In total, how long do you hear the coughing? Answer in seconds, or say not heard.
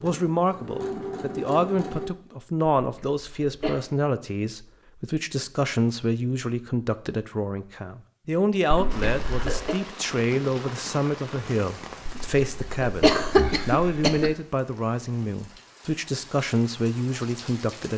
4 s.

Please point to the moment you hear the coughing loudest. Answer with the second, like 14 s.
13 s.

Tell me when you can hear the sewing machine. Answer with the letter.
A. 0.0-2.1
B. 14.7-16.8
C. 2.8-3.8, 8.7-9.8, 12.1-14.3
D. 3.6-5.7
A.